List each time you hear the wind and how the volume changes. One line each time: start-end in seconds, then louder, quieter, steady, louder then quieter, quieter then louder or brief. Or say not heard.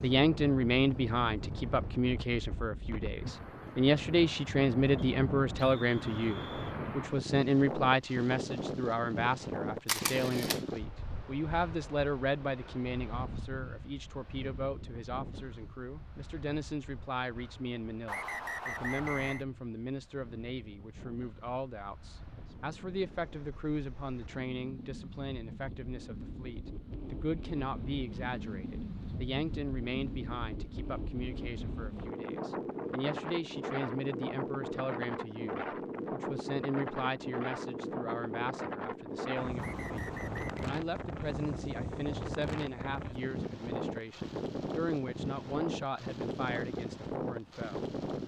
0.0-48.2 quieter then louder.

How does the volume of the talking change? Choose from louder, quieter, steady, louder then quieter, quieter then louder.
quieter.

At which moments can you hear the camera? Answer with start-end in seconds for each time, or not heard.
9.8-10.6.